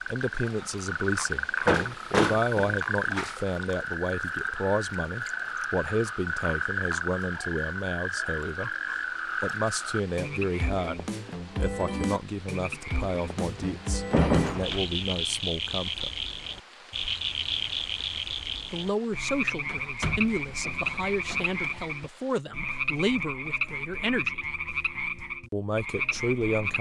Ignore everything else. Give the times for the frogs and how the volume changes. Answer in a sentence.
You can hear the frogs from 0.0 to 26.7 s, at a steady volume.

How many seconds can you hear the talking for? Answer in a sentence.
The talking can be heard for 23 seconds in total.